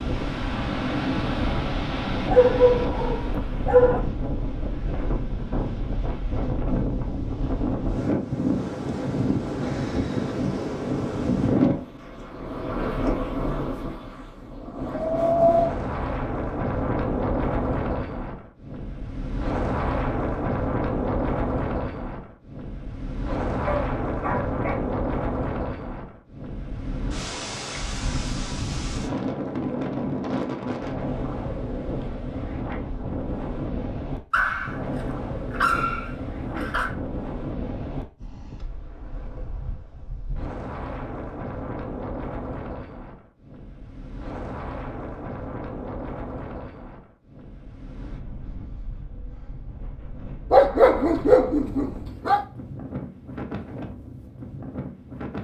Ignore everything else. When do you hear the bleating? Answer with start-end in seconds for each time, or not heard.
not heard.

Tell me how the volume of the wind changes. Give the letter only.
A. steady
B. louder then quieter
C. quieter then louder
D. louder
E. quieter
E.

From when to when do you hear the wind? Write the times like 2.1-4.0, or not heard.
0.0-55.4.